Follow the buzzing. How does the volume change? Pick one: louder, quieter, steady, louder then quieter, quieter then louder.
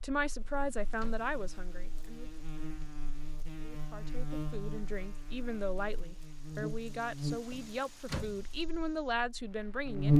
louder then quieter.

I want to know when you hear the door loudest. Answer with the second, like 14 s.
8 s.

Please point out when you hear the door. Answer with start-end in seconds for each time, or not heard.
0.4-1.1, 7.5-8.5.